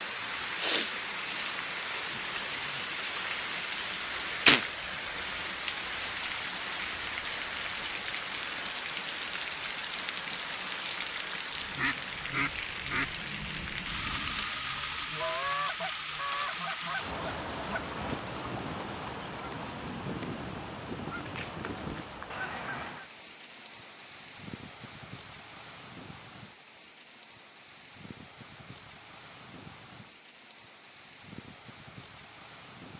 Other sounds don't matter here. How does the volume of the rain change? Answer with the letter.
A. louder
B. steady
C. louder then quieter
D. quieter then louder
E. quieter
E.